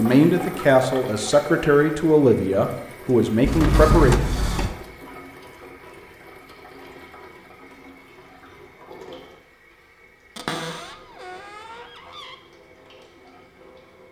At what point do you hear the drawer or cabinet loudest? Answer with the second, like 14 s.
4 s.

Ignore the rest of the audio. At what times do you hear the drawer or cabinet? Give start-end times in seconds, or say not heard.
3.4-4.8, 10.3-12.3.